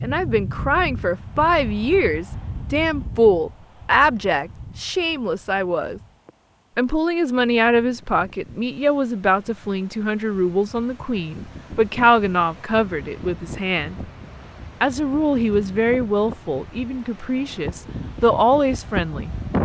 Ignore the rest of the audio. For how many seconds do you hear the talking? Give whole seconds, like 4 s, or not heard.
18 s.